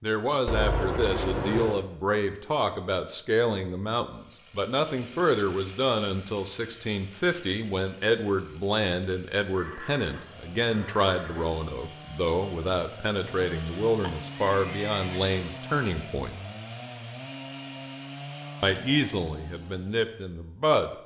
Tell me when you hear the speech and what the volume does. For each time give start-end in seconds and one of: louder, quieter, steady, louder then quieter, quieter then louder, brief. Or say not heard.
0.0-16.4 steady
18.6-20.9 brief.